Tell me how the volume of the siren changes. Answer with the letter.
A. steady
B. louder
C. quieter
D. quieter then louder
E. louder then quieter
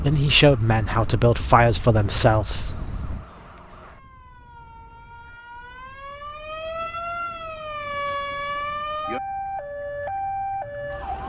B.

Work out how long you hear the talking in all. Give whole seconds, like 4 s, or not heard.
3 s.